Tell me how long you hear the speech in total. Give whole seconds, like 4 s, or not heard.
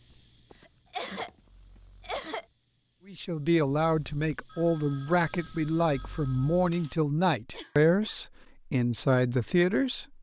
7 s.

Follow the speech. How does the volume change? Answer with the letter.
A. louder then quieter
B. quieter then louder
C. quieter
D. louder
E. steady
E.